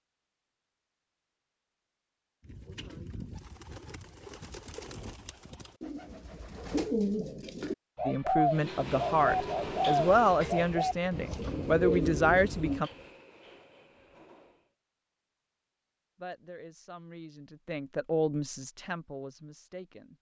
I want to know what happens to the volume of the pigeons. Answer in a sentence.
The loudness of the pigeons goes up.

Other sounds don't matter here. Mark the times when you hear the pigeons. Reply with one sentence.
You can hear the pigeons from 2.4 to 12.8 s.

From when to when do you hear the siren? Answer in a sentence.
You can't hear the siren here.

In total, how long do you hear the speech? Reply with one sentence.
The speech can be heard for 9 seconds in total.